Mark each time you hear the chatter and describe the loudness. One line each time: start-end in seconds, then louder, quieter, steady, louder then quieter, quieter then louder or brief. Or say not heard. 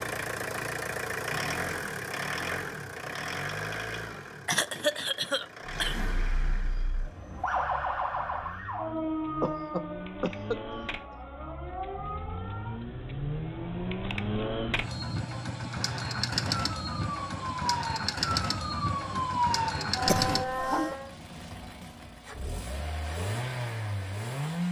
not heard.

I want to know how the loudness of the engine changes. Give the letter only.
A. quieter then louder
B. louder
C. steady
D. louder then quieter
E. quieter
A.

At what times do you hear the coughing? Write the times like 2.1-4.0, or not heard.
4.5-6.2, 9.4-11.2, 20.1-20.9.